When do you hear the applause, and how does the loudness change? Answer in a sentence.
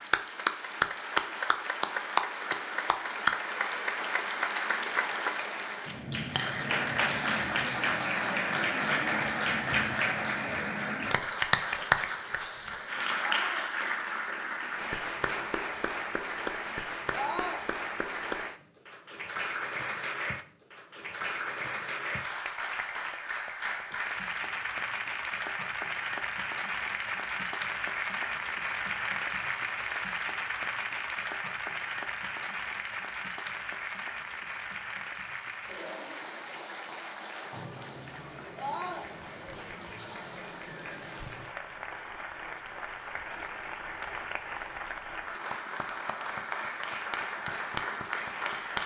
You can hear the applause from 0.0 to 48.8 s, getting quieter.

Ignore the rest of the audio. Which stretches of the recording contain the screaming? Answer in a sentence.
The screaming can be heard from 13.2 to 13.7 s, from 17.1 to 17.6 s and from 38.5 to 39.0 s.